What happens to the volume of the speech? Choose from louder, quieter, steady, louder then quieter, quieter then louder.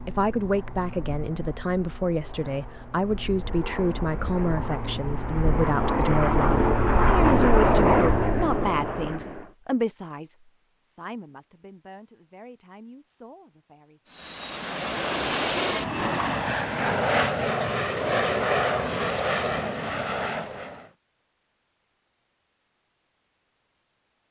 quieter.